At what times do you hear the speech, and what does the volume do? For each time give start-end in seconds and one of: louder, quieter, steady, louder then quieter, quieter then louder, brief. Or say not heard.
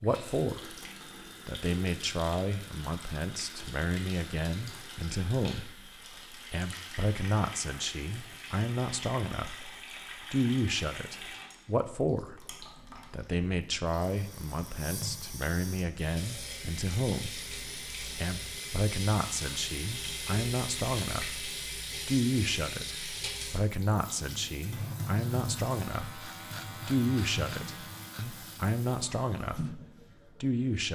0.0-0.7 brief
1.4-9.7 steady
10.3-12.4 brief
13.1-29.8 steady
30.4-30.9 brief.